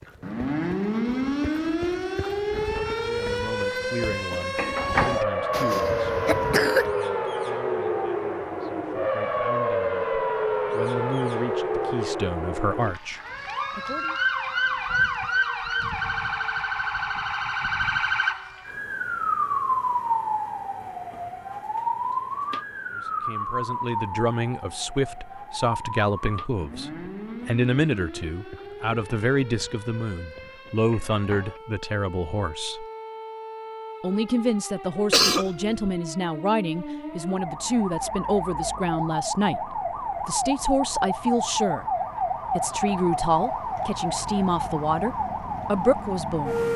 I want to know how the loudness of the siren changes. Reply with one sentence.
The volume of the siren goes down, then up.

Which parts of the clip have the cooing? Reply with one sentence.
You can't hear the cooing here.